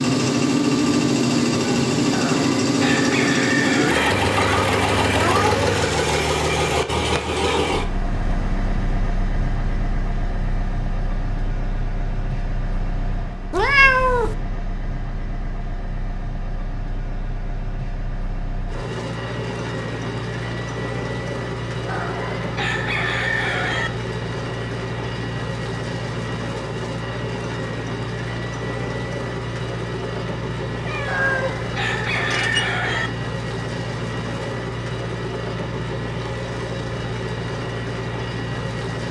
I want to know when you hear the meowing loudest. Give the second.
14 s.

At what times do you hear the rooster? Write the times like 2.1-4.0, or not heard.
2.1-4.2, 21.9-23.9, 31.1-33.1.